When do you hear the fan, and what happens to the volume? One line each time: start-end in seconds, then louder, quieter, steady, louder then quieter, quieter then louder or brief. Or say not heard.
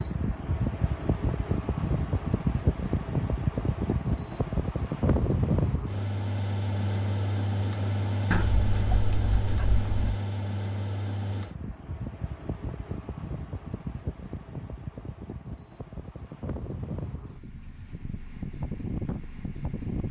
0.0-20.0 quieter.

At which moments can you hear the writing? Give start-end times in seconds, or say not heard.
8.3-10.2.